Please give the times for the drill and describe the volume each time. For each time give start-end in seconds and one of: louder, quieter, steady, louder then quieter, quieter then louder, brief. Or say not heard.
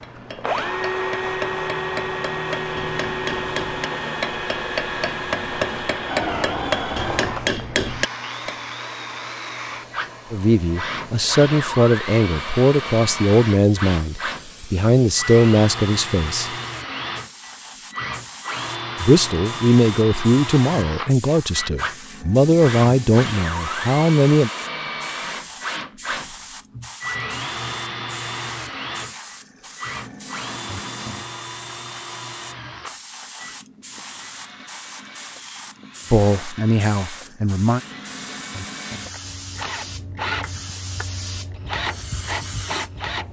0.1-43.2 quieter.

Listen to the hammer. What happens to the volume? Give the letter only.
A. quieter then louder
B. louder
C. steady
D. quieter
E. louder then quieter
B.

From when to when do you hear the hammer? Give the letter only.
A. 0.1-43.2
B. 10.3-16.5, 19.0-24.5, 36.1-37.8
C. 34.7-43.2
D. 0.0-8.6
D.